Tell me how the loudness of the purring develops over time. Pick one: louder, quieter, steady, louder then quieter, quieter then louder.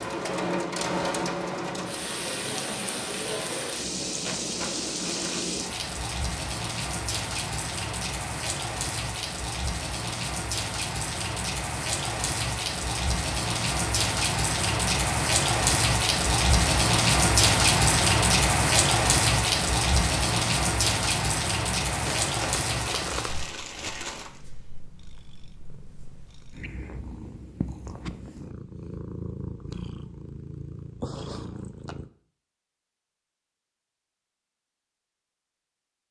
louder.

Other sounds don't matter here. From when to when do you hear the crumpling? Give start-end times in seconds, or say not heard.
4.2-5.5, 22.0-24.4.